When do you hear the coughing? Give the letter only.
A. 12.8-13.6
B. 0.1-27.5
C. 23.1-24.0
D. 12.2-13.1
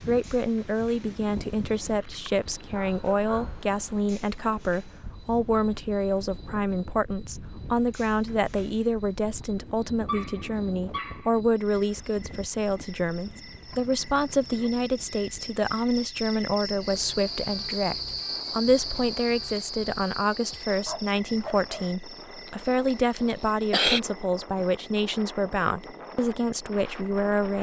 C.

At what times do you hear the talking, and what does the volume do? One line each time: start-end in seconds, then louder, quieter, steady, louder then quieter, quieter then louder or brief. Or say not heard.
0.1-27.5 steady.